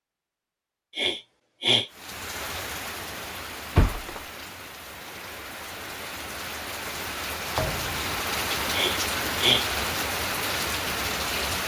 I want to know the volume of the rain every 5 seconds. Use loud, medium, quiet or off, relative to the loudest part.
medium, loud, loud.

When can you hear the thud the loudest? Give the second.
4 s.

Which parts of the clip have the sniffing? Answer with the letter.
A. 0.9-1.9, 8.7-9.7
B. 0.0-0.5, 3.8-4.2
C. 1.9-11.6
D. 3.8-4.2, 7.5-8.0
A.